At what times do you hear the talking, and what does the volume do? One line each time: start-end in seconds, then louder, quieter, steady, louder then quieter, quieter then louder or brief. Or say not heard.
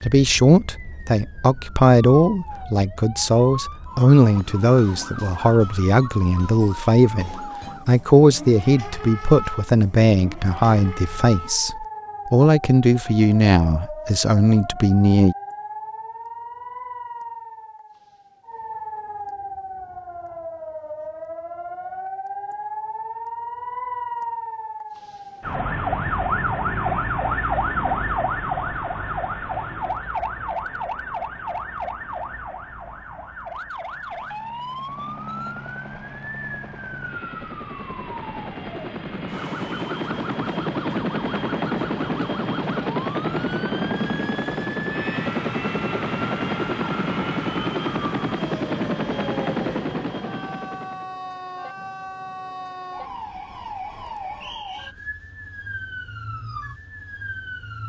0.0-15.3 steady.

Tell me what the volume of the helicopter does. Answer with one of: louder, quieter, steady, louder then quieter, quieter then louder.
louder.